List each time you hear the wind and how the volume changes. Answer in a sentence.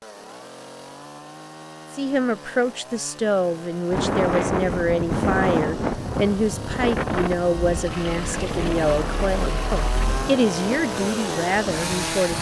The wind can be heard from 3.9 to 12.2 s, getting quieter.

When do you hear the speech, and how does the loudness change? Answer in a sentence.
You can hear the speech from 1.9 to 12.3 s, at a steady volume.